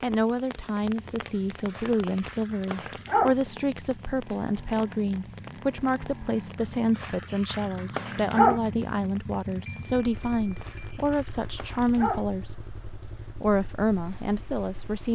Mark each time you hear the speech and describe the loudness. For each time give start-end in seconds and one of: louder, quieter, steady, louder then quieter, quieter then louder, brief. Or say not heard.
0.0-12.6 steady
13.3-15.1 brief.